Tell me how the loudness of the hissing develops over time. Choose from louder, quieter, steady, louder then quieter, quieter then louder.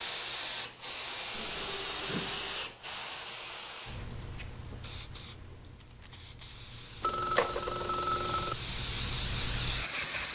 quieter then louder.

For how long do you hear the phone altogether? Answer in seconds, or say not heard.
3 s.